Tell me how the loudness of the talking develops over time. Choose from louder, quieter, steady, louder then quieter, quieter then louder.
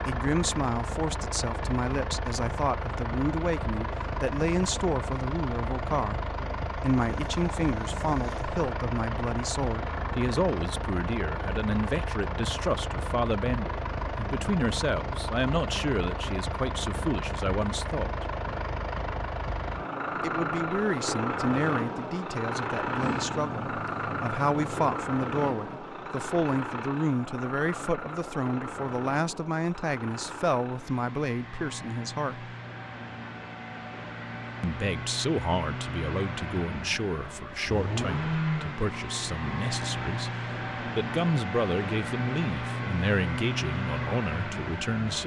steady.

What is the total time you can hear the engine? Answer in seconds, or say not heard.
45 s.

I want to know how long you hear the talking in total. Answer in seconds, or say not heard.
41 s.